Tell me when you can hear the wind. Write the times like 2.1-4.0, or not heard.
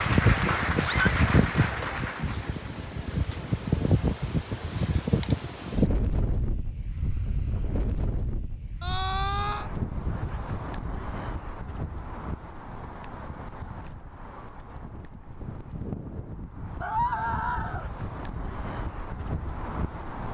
0.0-20.2.